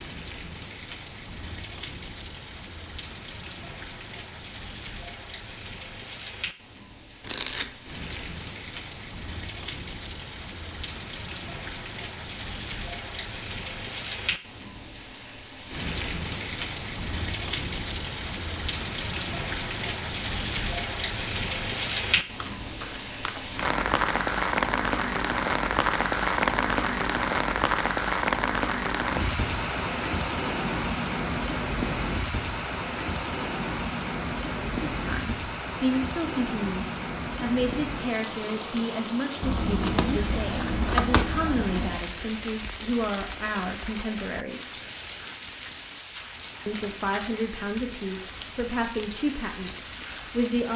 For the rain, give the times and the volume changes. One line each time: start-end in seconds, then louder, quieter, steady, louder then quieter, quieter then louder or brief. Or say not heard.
0.0-50.7 louder then quieter.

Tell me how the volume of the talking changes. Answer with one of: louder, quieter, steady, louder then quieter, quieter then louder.
steady.